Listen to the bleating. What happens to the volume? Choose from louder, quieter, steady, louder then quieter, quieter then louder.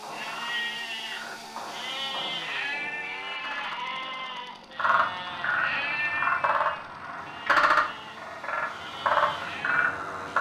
quieter.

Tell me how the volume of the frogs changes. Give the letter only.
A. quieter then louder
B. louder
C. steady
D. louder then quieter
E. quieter
B.